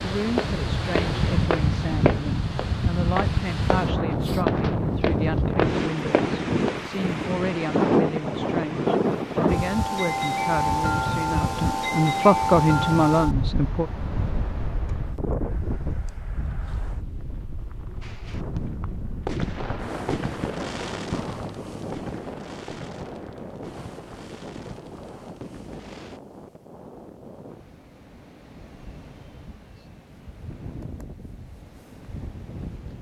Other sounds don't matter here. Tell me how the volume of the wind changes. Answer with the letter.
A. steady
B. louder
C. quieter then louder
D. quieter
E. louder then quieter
D.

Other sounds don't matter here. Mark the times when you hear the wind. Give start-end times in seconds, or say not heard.
0.0-32.9.